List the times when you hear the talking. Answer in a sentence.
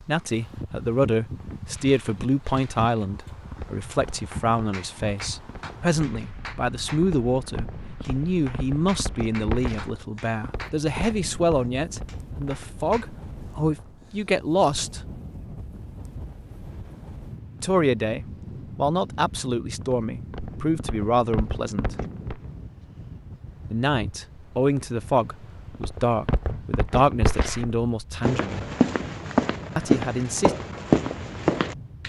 You can hear the talking from 0.1 to 15.1 s, from 17.6 to 21.9 s, from 23.7 to 28.6 s and from 29.8 to 30.6 s.